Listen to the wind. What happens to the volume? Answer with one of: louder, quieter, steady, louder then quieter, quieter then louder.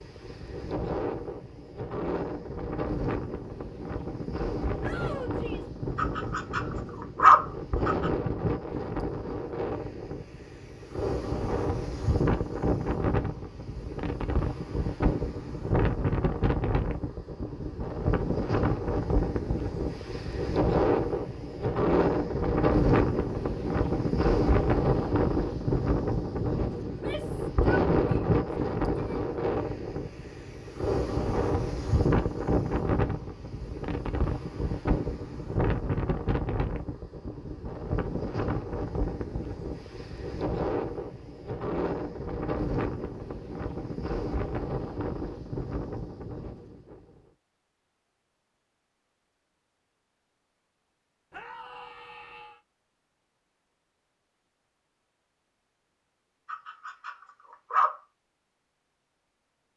louder then quieter.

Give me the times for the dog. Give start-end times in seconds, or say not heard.
6.0-6.6, 7.2-8.1, 56.5-58.0.